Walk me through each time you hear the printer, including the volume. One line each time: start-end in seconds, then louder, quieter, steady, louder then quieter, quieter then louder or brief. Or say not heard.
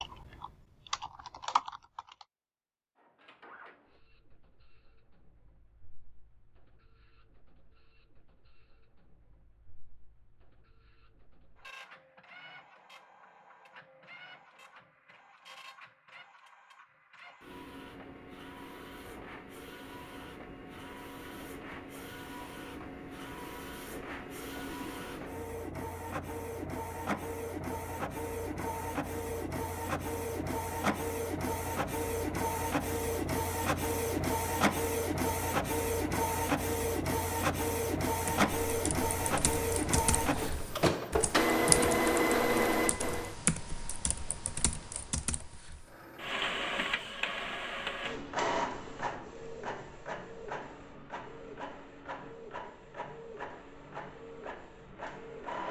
3.0-43.4 louder
45.9-55.6 quieter.